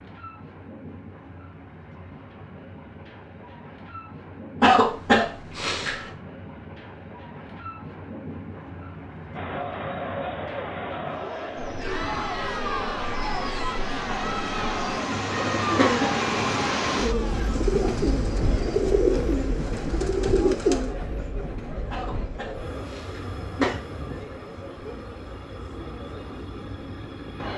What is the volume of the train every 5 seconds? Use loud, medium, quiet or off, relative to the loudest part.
quiet, medium, medium, loud, medium, medium.